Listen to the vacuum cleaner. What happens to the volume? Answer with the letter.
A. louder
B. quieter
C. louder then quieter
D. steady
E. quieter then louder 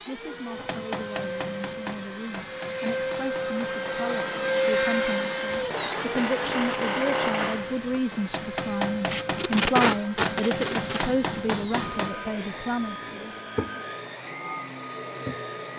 C.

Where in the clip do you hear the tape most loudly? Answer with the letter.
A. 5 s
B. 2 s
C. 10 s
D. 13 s
C.